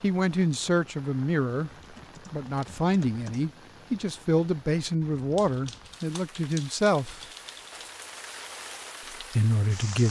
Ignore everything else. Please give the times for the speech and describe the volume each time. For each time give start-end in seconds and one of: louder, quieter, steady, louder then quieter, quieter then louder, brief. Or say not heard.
0.0-1.7 brief
2.3-7.2 steady
9.3-10.0 brief.